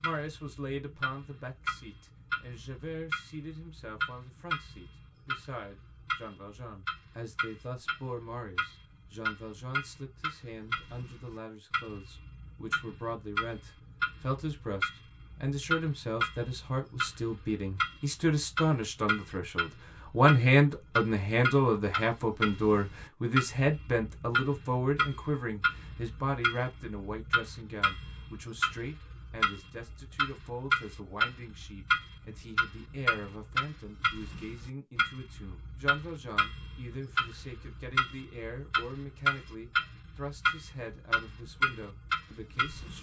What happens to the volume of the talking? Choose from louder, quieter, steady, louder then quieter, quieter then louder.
louder then quieter.